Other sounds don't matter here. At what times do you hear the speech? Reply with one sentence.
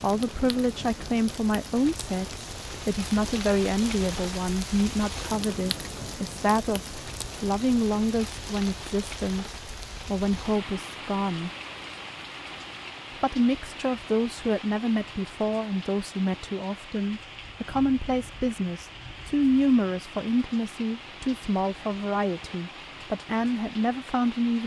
The speech can be heard from 0.0 to 11.5 s and from 13.2 to 24.6 s.